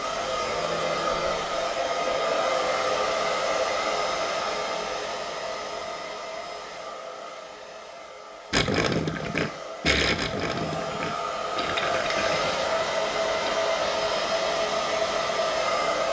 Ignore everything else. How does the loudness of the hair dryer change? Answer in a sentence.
The loudness of the hair dryer goes down, then up.